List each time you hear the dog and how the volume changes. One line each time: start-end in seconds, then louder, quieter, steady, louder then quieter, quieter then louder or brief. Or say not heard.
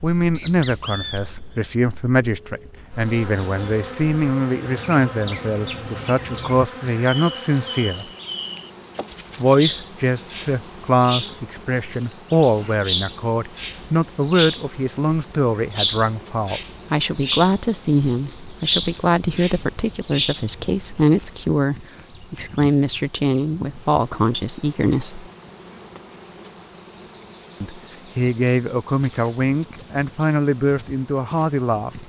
not heard.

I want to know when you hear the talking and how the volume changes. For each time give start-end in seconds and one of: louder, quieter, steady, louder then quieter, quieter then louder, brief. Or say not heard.
0.0-8.1 steady
9.3-25.2 steady
27.6-32.0 steady.